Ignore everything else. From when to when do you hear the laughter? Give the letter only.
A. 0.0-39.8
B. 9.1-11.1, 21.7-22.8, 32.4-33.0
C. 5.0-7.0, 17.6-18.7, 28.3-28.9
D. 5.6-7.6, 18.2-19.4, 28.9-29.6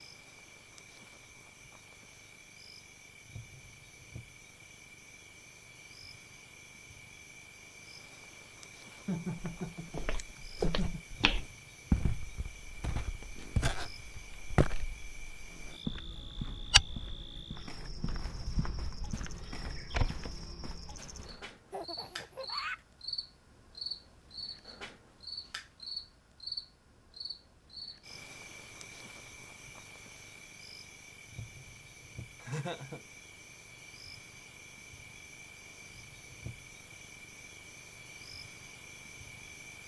B.